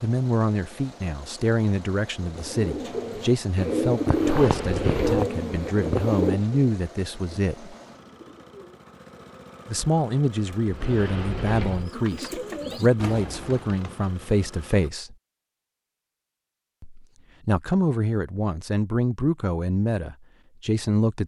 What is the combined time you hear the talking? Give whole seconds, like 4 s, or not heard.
18 s.